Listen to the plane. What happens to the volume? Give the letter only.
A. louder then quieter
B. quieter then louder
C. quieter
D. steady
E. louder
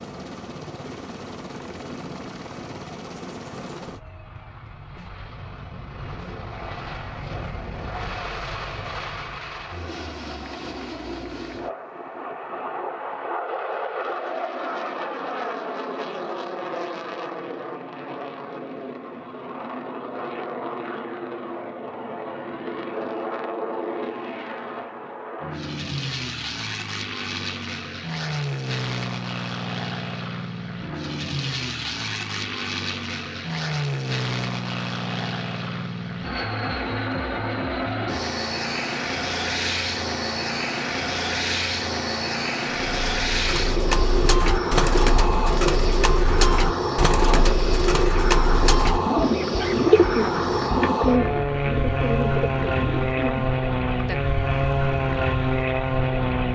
E.